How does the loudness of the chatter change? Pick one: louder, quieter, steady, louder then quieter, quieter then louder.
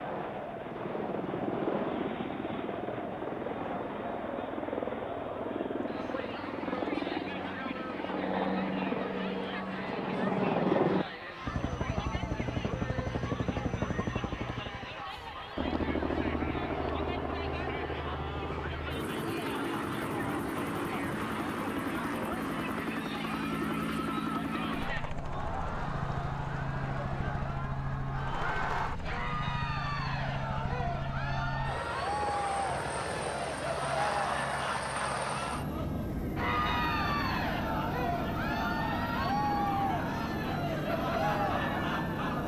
louder.